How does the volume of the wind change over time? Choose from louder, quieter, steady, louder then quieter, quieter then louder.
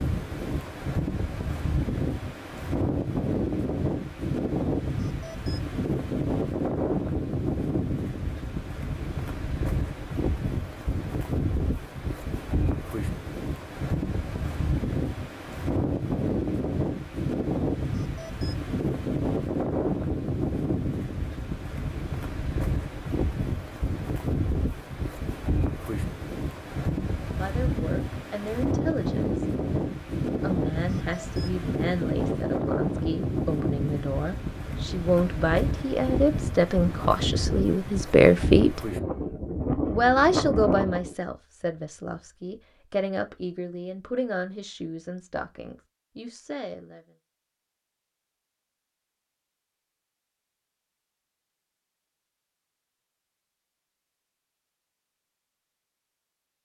steady.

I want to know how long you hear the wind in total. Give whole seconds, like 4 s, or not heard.
41 s.